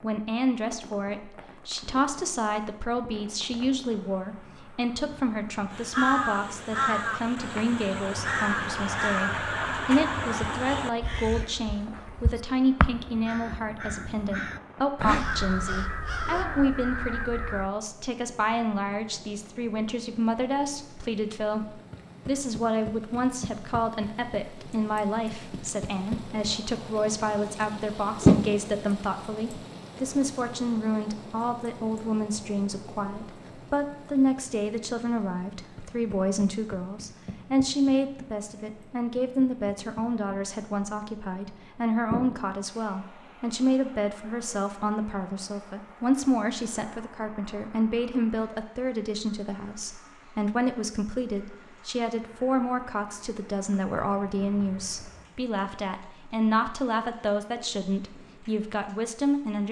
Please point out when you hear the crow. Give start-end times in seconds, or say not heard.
5.7-17.7.